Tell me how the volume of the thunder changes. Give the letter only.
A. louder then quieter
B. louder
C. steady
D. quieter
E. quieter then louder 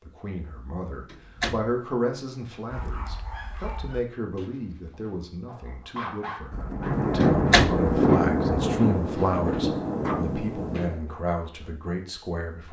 D.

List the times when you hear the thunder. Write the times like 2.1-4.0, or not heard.
6.5-11.0.